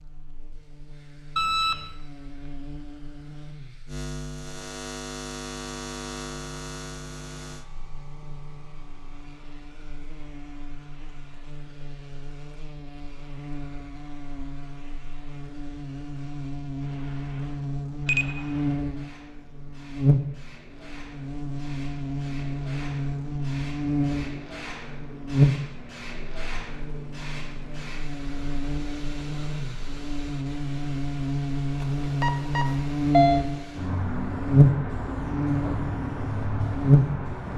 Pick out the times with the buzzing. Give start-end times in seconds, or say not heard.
0.0-37.4.